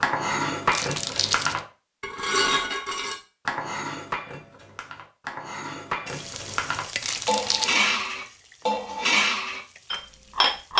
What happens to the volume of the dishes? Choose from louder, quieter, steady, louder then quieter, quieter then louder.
quieter then louder.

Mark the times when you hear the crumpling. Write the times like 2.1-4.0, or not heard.
0.7-1.6, 7.0-7.8.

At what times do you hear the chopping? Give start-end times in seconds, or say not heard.
not heard.